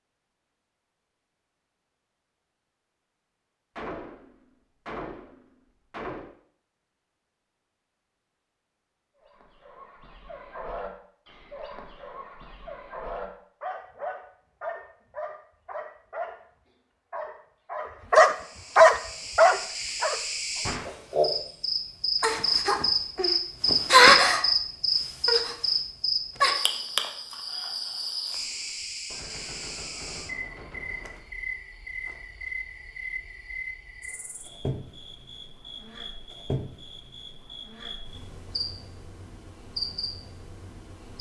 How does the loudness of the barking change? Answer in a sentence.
The volume of the barking goes up.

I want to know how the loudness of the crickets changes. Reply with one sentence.
The loudness of the crickets goes up, then down.